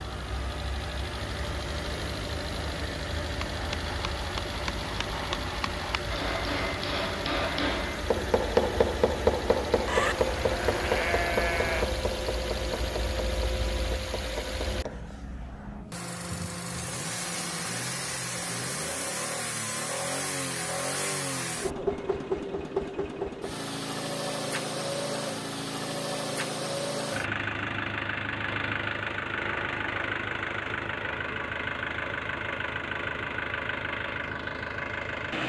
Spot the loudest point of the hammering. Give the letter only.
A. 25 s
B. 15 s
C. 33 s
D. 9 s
D.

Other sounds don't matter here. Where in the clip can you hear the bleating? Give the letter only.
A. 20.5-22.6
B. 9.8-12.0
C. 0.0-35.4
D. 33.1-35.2
B.